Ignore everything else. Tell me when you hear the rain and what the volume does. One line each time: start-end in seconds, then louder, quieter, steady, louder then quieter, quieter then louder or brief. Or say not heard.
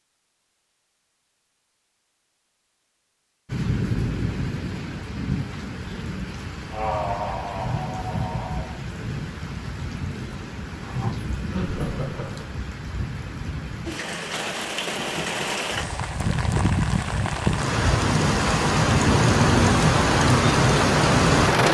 3.5-21.6 louder.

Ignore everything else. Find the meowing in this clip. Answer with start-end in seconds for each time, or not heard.
not heard.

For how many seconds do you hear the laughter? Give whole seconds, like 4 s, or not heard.
3 s.